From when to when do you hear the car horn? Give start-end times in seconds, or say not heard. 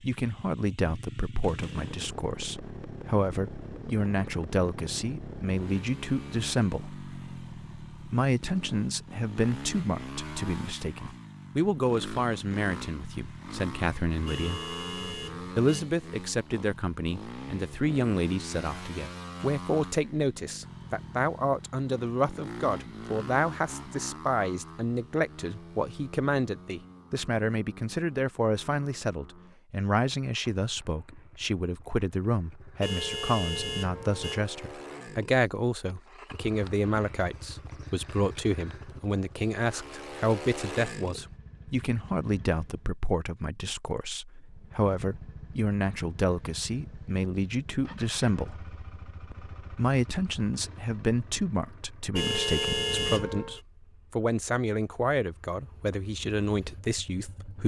14.2-15.8, 32.8-34.5, 52.1-53.6.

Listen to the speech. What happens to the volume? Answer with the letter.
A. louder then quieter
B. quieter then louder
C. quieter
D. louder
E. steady
E.